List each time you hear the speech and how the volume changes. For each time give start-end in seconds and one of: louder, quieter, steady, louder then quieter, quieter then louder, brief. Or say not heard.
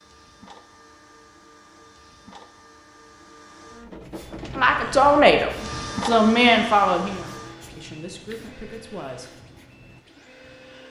4.5-9.3 quieter.